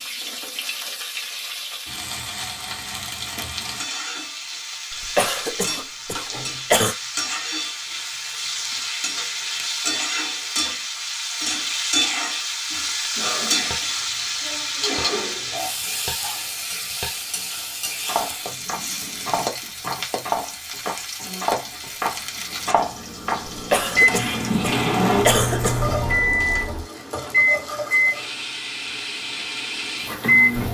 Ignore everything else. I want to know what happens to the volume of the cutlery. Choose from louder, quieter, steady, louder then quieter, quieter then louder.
louder.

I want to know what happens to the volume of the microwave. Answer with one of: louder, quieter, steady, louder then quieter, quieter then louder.
quieter.